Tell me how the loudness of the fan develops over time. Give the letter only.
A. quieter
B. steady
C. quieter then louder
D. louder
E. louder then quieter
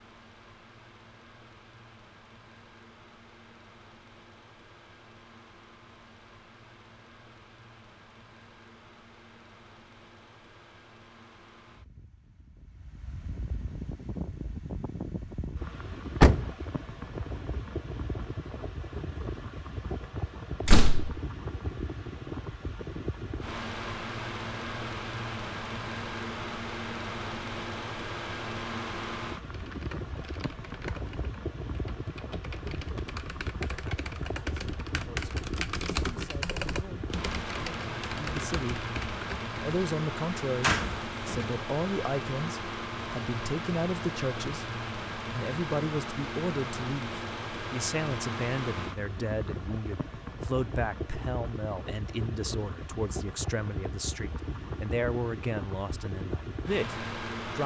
D.